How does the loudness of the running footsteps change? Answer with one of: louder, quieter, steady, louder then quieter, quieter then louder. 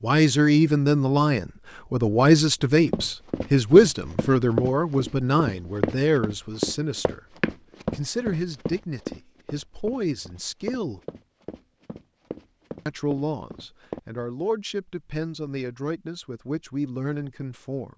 quieter.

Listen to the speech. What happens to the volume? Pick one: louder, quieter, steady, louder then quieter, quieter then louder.
quieter.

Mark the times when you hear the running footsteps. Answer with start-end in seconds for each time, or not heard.
2.9-14.0.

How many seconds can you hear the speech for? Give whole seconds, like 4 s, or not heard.
15 s.